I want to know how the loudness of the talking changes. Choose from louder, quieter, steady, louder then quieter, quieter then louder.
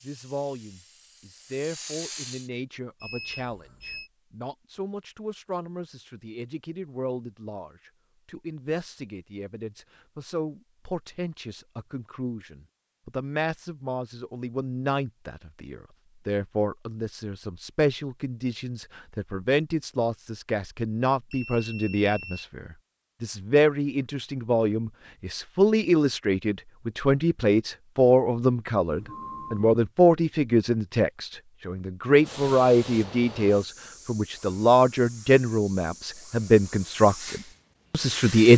louder.